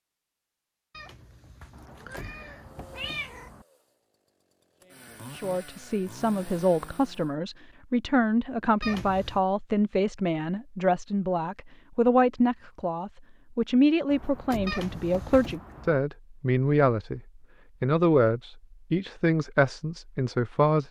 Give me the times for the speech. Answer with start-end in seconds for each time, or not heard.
5.2-17.2, 17.8-20.8.